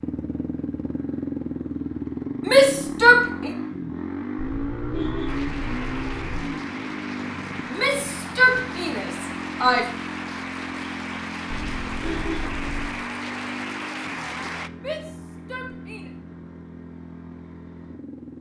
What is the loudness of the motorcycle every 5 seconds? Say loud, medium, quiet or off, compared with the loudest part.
loud, loud, medium, medium.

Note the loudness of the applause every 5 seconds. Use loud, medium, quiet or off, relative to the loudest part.
off, loud, loud, off.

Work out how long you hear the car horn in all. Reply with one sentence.
You can hear the car horn for 4 seconds altogether.